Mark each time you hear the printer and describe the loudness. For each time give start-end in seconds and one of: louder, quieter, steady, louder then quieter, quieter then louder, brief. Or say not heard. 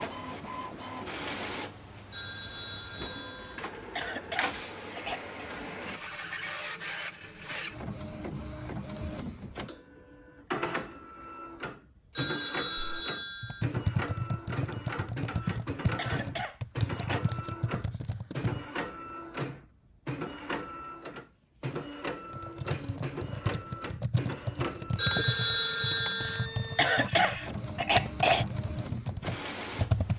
0.0-30.1 steady.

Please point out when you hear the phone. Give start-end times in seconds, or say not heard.
2.1-3.6, 12.2-13.7, 24.9-26.5.